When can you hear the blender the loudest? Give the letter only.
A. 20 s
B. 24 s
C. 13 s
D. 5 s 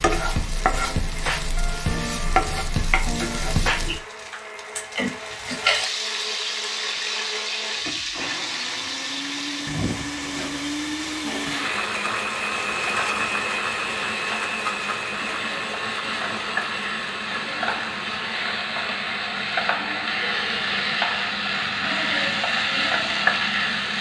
C.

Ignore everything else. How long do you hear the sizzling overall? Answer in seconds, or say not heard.
24 s.